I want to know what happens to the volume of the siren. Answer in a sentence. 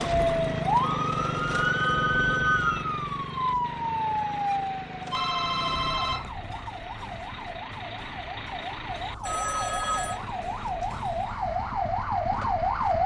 The loudness of the siren goes down, then up.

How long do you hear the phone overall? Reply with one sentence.
The phone can be heard for 4 seconds in total.